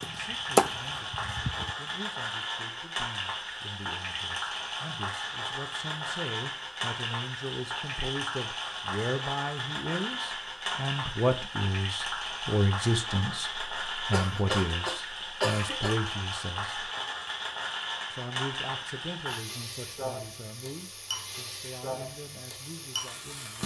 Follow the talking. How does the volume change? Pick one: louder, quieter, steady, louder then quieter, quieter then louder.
louder then quieter.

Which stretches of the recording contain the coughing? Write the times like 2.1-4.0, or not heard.
14.1-16.0.